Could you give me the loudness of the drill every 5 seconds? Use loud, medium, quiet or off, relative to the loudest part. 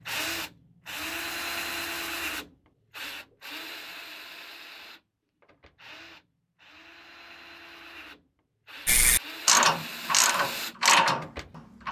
loud, medium, loud.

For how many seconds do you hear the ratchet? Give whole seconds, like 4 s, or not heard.
3 s.